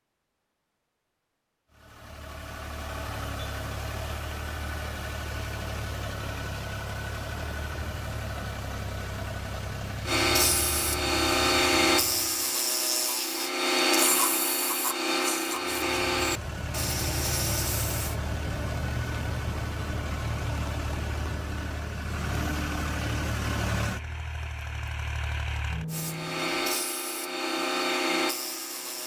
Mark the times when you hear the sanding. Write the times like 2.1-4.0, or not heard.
10.1-18.1, 25.9-29.0.